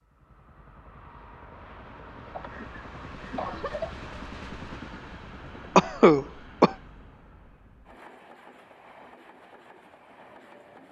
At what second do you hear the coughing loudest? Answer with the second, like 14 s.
6 s.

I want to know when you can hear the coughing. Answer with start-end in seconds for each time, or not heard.
2.4-3.9, 5.8-6.8.